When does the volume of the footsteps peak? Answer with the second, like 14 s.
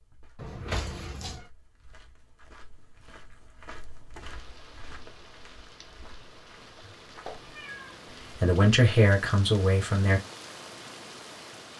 4 s.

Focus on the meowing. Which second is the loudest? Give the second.
1 s.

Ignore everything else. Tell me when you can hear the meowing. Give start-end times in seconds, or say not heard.
0.3-1.4, 7.2-8.2.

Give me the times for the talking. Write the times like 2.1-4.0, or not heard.
8.3-10.2.